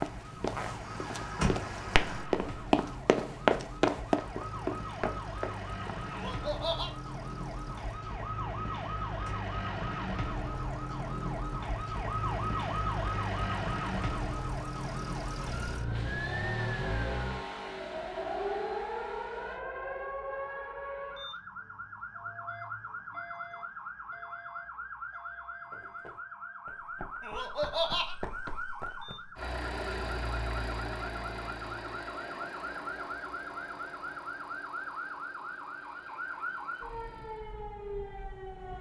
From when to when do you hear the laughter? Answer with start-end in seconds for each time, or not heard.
6.1-6.9, 27.2-28.1.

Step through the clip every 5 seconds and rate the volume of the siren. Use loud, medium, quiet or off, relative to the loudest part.
medium, loud, loud, loud, medium, medium, medium, medium.